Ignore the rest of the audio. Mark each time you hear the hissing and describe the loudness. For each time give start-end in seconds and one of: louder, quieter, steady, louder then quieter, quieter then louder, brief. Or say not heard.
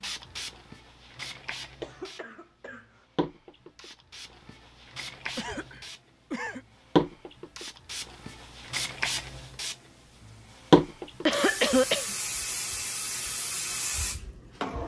0.0-14.8 louder then quieter.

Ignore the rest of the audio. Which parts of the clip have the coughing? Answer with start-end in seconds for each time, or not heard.
1.8-2.9, 5.3-6.7, 11.2-12.2.